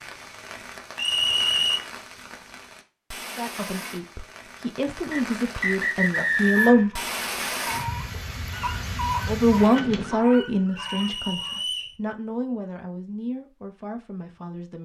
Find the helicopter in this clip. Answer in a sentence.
The helicopter can't be heard in this clip.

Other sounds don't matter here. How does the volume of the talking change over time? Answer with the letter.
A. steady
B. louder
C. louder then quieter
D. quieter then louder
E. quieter
C.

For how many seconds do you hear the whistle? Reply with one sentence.
You can hear the whistle for 4 seconds altogether.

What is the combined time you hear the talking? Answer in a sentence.
The talking can be heard for 9 seconds in total.